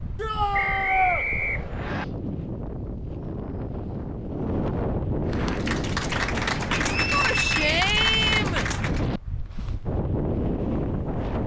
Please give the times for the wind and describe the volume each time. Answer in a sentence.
You can hear the wind from 0.0 to 11.4 s, getting louder.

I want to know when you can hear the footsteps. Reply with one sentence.
You can't hear the footsteps here.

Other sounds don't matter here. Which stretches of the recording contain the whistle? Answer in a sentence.
You can hear the whistle from 0.5 to 2.0 s and from 6.8 to 7.7 s.